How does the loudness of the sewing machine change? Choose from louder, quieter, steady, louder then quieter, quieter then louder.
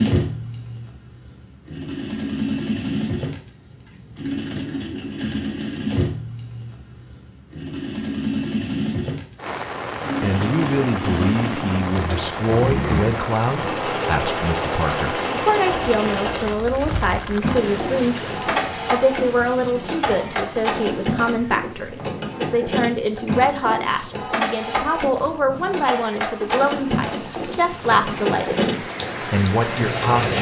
steady.